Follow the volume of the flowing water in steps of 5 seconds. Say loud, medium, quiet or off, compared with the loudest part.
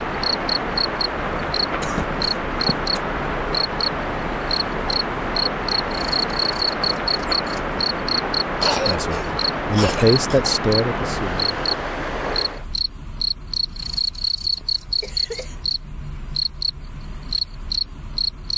loud, loud, loud, off.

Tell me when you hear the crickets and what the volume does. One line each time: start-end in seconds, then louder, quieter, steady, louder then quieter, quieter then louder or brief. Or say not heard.
0.0-18.5 steady.